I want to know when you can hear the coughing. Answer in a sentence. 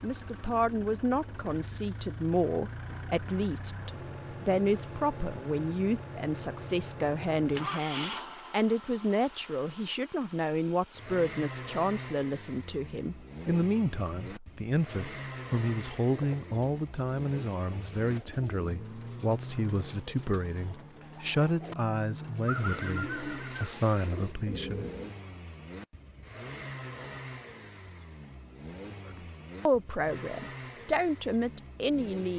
You can't hear the coughing here.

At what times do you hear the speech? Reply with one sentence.
You can hear the speech from 0.0 to 24.9 s and from 29.1 to 32.3 s.